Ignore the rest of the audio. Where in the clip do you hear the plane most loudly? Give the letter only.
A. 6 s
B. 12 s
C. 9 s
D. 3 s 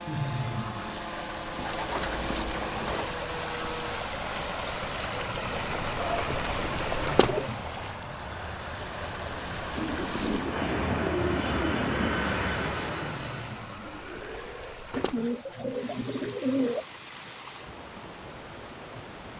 B.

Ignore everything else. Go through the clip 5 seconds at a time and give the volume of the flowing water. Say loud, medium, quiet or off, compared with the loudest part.
loud, loud, medium, medium.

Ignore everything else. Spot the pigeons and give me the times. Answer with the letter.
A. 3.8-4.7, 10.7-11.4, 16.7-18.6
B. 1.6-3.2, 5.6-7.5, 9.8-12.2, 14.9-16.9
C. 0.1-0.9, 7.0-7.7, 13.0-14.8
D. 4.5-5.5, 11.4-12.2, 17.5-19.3
B.